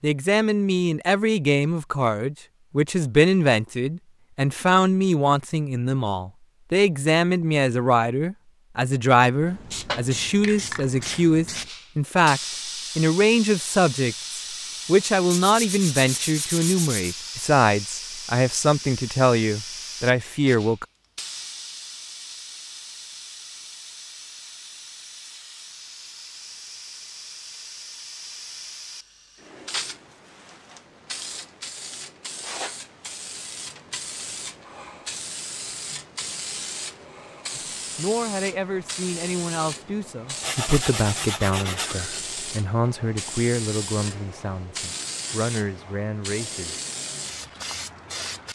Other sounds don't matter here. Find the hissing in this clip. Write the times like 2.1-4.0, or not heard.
9.4-48.5.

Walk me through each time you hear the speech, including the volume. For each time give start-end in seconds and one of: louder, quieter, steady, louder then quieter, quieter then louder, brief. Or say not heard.
0.0-20.9 steady
37.5-46.9 steady.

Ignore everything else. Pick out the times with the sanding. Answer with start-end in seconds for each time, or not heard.
15.3-17.1, 40.4-42.2.